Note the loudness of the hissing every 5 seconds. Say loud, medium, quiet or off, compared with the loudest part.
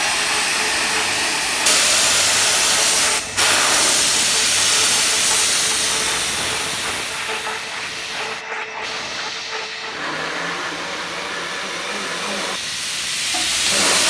loud, medium, medium.